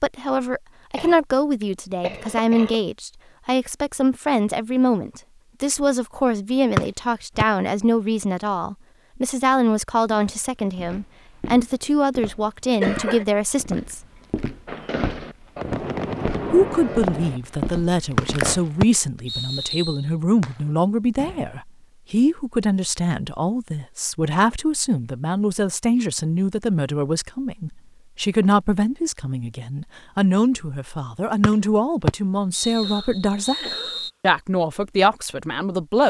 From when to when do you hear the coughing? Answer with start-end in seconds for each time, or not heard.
0.9-2.8, 12.7-13.2, 32.8-34.0.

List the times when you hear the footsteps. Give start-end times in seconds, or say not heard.
10.1-18.6.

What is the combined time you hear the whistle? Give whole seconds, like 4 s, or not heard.
5 s.